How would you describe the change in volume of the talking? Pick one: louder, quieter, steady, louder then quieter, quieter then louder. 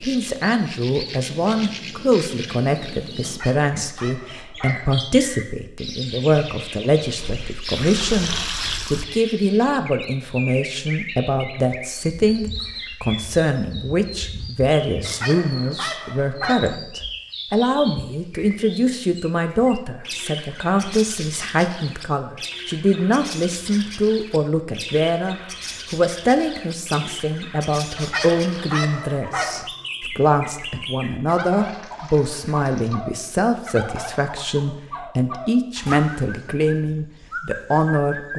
steady.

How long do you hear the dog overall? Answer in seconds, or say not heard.
5 s.